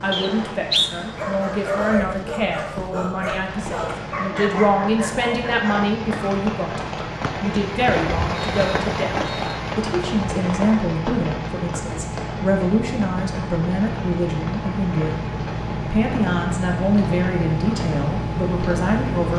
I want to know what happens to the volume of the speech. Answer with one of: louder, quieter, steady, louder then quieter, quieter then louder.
steady.